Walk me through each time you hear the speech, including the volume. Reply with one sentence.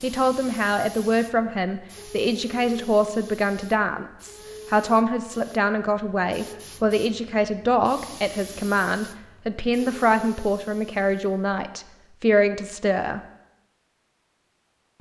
You can hear the speech from 0.0 to 13.2 s, at a steady volume.